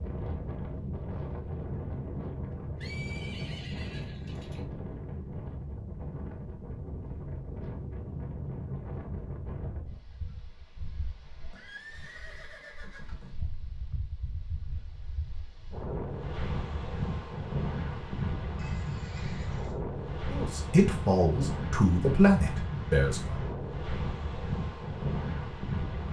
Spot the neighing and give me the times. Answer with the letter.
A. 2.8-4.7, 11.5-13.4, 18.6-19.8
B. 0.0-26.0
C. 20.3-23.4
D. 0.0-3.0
A.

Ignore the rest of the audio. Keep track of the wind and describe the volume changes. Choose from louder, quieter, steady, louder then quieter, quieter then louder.
quieter then louder.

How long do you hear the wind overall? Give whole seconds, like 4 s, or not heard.
26 s.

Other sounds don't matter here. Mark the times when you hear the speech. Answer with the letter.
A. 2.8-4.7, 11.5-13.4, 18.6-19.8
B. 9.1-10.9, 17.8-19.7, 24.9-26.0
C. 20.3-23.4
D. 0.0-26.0
C.